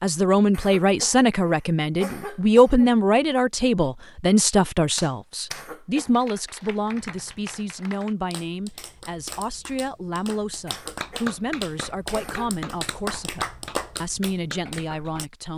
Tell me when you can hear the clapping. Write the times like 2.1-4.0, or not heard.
5.0-15.2.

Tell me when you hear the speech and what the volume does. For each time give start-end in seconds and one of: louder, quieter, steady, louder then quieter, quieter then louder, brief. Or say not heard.
0.0-15.5 quieter.